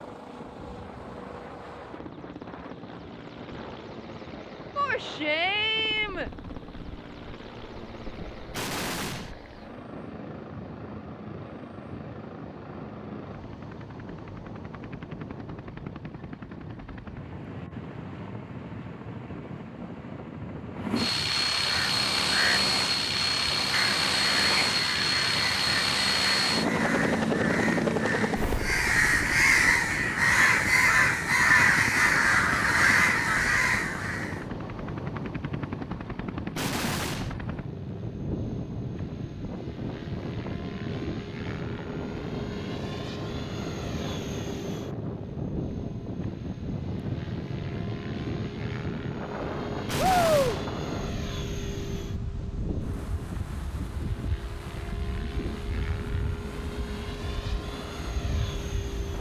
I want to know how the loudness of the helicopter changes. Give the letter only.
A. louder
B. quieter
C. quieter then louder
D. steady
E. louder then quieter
E.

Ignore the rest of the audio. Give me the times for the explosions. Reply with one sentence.
The explosions can be heard from 8.5 to 9.3 s, from 36.5 to 37.4 s and from 49.9 to 50.7 s.